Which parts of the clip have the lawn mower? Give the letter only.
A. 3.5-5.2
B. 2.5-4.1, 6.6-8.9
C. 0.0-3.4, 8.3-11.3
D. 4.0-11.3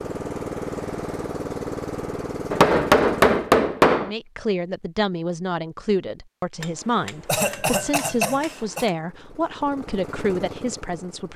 C.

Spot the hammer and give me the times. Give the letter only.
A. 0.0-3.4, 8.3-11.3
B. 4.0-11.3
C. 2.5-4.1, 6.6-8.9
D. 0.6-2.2
C.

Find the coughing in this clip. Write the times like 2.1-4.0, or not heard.
7.2-8.9.